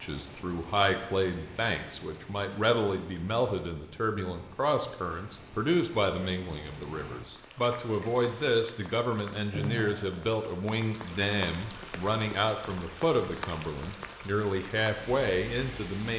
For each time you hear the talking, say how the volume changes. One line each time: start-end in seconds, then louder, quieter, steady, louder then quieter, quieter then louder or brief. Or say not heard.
0.0-16.1 steady.